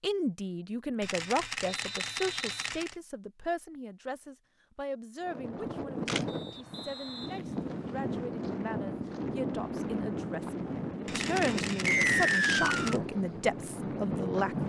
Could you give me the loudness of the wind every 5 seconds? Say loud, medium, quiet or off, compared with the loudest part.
off, loud, loud.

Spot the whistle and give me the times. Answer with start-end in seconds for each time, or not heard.
1.6-2.7, 6.2-8.3, 11.8-13.0.